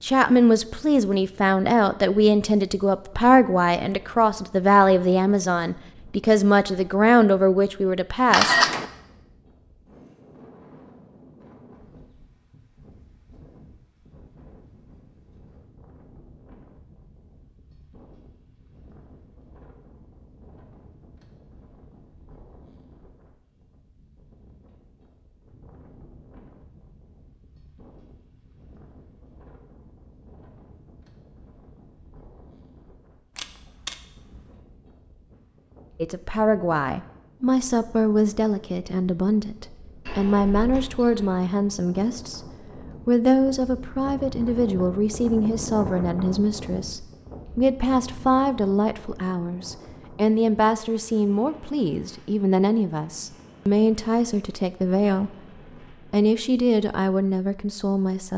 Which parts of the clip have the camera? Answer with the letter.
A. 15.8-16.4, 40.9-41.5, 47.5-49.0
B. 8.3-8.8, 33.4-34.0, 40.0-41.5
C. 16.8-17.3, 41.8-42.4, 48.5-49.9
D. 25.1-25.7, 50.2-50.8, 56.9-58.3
B.